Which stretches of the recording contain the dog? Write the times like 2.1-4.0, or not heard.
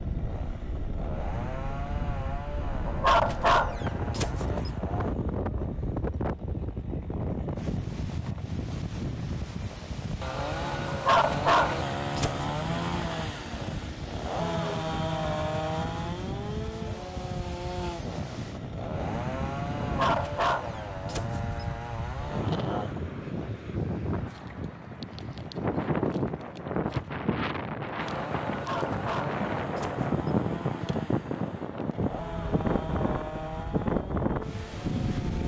2.9-4.7, 10.8-12.4, 19.8-21.6, 28.5-30.1.